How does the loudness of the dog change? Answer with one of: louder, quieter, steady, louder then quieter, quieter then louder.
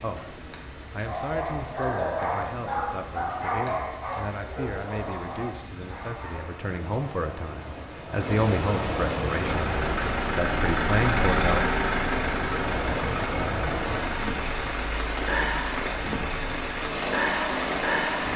quieter.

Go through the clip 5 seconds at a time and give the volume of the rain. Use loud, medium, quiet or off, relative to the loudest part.
quiet, medium, loud, loud.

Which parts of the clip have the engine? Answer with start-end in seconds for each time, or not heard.
9.3-18.3.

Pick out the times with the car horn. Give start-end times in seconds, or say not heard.
not heard.